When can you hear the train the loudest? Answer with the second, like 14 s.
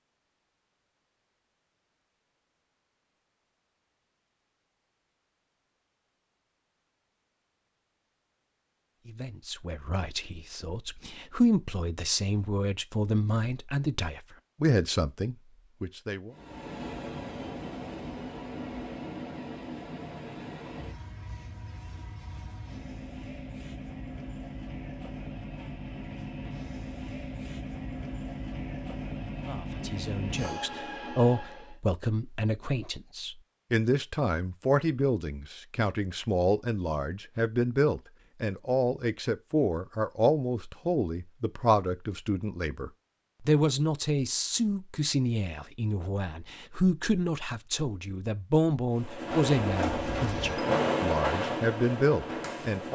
51 s.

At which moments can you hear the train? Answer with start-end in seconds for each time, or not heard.
16.3-31.8, 48.9-52.9.